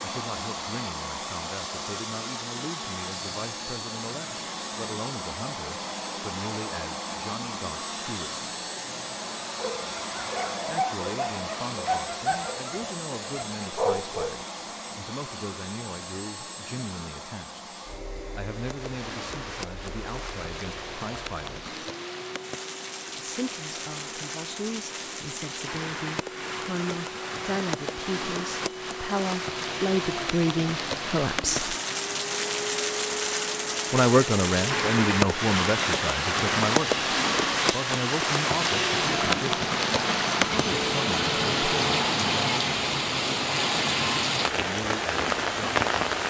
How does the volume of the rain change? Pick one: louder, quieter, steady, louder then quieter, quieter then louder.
louder.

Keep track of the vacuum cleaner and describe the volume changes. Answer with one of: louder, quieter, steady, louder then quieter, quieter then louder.
quieter then louder.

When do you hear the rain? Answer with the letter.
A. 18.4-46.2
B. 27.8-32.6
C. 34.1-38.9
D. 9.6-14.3
A.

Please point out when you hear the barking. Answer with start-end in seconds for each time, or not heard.
9.6-14.3.